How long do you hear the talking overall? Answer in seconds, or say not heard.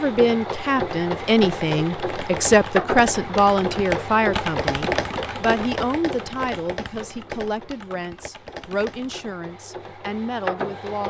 11 s.